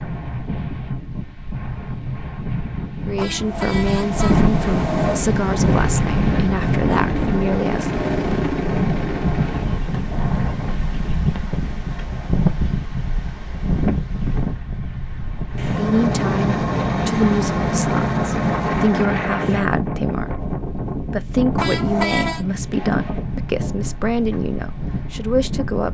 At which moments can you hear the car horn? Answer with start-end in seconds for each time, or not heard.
3.1-5.2, 21.6-22.4.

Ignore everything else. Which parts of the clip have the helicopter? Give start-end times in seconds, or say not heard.
4.6-9.7, 15.5-19.6.